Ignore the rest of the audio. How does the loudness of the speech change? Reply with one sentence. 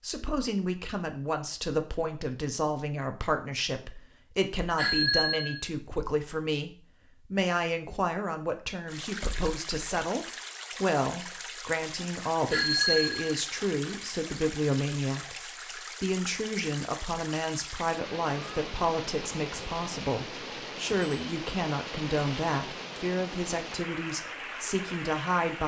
The loudness of the speech stays about the same.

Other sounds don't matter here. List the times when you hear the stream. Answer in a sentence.
You can hear the stream from 8.8 to 25.6 s.